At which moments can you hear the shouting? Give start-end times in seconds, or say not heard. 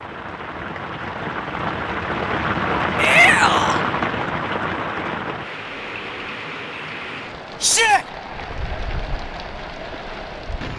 3.0-3.9, 7.6-8.1.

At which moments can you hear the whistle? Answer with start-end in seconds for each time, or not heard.
not heard.